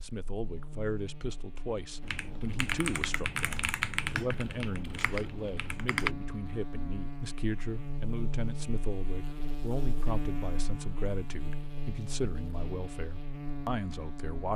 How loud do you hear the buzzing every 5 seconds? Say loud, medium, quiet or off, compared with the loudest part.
medium, loud, loud.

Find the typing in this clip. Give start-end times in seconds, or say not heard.
2.0-6.2.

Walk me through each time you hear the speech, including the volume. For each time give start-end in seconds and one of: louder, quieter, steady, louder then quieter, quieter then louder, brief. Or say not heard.
0.0-14.5 steady.